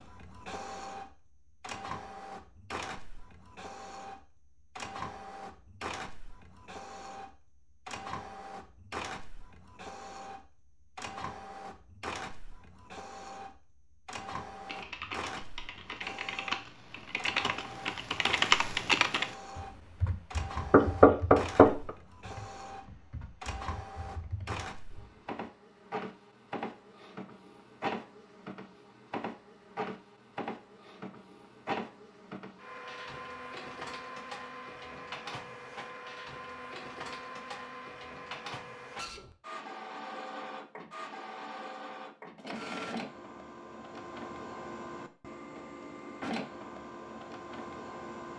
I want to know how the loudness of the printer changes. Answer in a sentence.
The volume of the printer stays about the same.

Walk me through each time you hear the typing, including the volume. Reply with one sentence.
You can hear the typing from 14.6 to 25.2 s, getting louder then quieter.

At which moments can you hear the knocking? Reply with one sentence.
The knocking can be heard from 20.7 to 21.9 s.